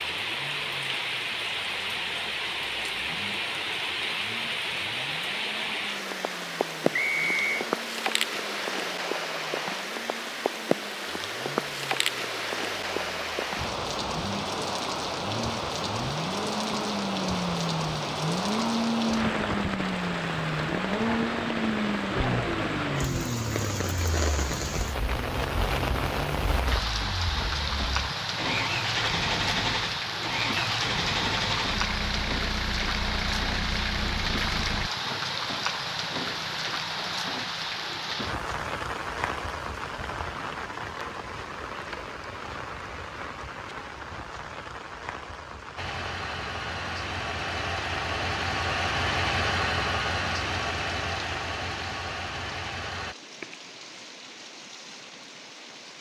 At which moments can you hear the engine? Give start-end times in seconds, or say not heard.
0.0-34.9, 45.8-53.1.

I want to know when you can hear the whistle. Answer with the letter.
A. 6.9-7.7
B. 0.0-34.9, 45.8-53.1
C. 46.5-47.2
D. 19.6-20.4
A.